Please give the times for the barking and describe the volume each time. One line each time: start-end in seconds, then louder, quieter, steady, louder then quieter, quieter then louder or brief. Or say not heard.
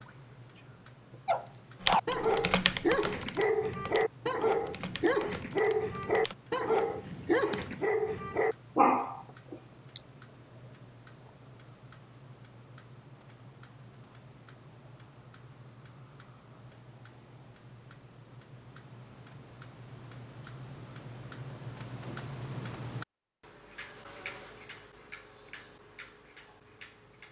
1.2-10.0 steady.